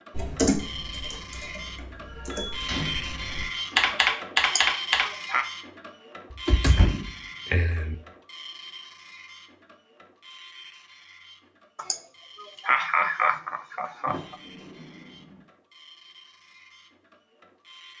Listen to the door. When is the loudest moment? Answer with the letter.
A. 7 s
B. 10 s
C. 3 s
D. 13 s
A.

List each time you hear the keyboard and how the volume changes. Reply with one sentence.
You can hear the keyboard from 0.1 to 5.0 s, getting quieter then louder.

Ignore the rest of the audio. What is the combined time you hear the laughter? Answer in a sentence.
The laughter can be heard for 4 seconds in total.